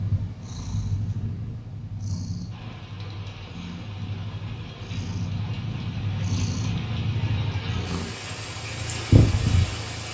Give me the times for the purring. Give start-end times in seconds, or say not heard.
0.0-10.0.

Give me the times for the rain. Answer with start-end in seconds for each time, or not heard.
2.5-10.0.